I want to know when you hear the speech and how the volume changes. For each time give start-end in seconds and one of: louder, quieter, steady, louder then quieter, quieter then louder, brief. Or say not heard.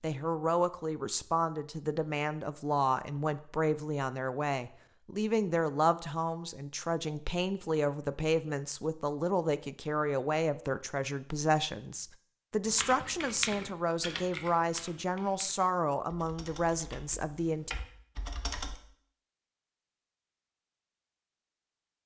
0.0-17.7 steady.